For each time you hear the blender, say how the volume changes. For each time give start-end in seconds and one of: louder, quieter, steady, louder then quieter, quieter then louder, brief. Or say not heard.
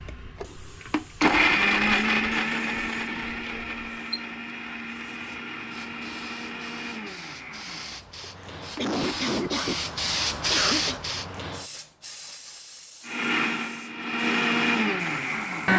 0.0-9.3 quieter
13.1-15.7 brief.